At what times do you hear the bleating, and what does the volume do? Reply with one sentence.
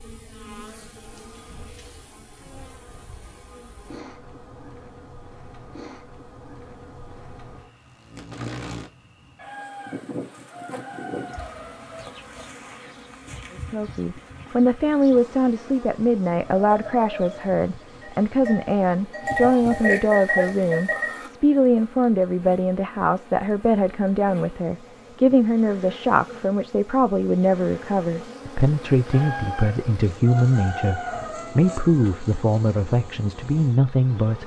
The bleating can be heard from 16.6 to 21.3 s, getting louder.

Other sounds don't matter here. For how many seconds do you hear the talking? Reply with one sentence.
The talking can be heard for 21 seconds in total.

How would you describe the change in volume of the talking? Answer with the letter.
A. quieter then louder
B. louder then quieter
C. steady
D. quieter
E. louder
C.